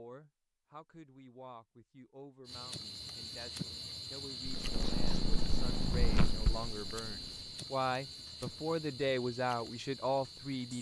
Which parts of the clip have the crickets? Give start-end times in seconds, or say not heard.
2.5-10.7.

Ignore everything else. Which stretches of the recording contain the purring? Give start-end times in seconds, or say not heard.
4.5-7.5.